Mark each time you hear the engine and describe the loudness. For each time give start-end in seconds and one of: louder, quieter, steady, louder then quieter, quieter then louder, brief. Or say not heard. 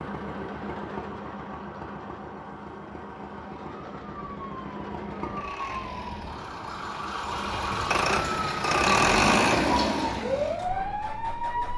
0.0-11.7 louder.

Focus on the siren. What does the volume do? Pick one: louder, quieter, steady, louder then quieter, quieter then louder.
louder.